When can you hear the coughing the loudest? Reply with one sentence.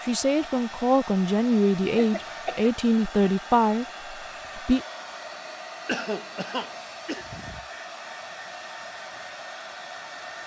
The volume of the coughing peaks at 6 seconds.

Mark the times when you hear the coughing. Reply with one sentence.
You can hear the coughing from 1.9 to 2.7 s and from 5.8 to 7.2 s.